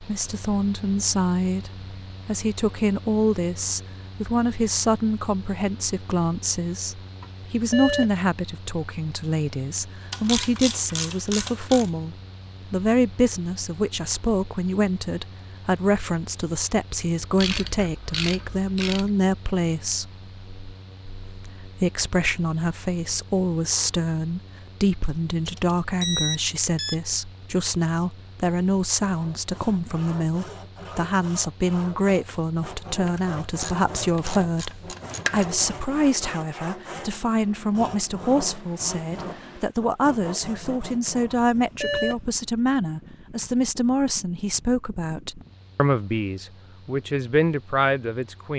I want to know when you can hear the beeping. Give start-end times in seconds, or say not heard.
7.2-8.1, 25.0-26.9, 41.3-42.1.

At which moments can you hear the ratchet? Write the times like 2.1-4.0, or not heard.
10.1-11.9, 17.4-19.1, 33.0-35.5.